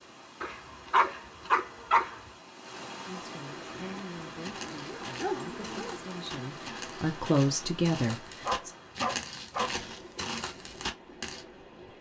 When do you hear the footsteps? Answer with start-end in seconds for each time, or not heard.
3.6-11.4.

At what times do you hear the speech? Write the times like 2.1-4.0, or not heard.
3.0-8.7.